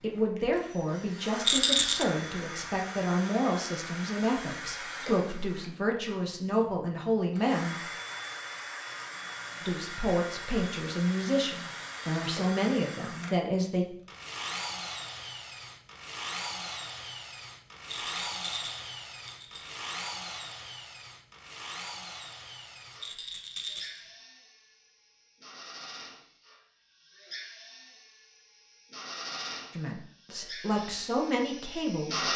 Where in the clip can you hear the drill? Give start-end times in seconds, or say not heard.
0.0-32.3.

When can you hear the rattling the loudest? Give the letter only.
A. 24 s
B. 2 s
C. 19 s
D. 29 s
B.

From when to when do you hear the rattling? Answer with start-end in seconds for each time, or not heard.
1.4-2.0, 17.9-19.8, 23.0-24.1.